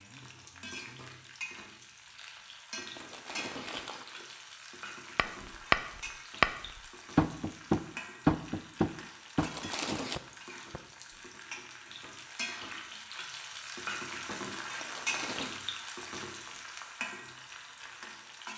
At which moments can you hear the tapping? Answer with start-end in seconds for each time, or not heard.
5.2-11.2.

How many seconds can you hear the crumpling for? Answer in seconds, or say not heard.
3 s.